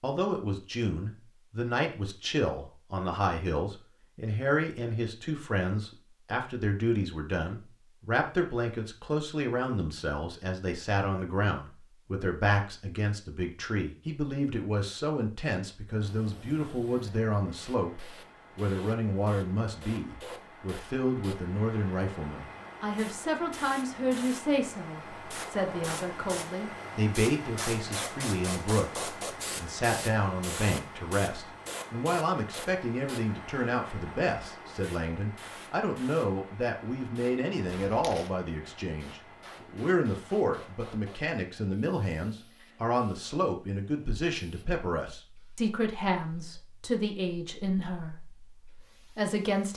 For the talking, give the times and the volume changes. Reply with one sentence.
The talking can be heard from 0.0 to 49.7 s, at a steady volume.